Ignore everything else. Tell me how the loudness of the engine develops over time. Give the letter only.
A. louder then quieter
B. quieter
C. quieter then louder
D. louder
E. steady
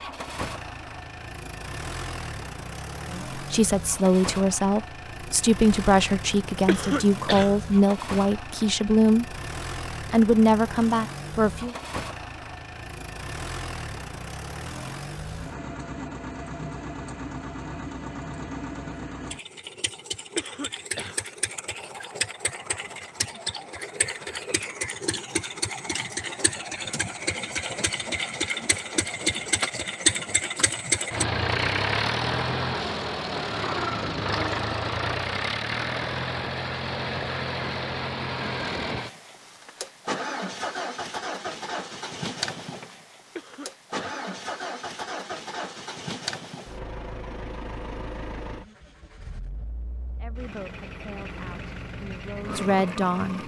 A.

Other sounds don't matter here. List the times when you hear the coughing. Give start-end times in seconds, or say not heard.
6.7-7.5, 20.4-21.2, 43.4-44.0.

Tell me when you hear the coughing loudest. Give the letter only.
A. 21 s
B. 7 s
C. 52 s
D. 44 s
B.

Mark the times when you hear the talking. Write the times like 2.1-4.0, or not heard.
3.1-9.3, 10.1-11.8, 50.1-53.4.